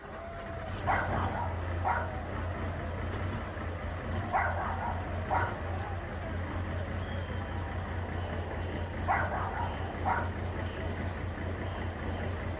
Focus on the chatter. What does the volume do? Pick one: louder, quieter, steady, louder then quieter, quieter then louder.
steady.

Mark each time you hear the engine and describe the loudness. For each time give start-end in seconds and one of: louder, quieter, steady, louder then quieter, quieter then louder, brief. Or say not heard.
0.0-12.5 steady.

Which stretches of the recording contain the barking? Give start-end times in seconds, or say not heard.
0.8-2.5, 4.3-5.7, 9.1-10.7.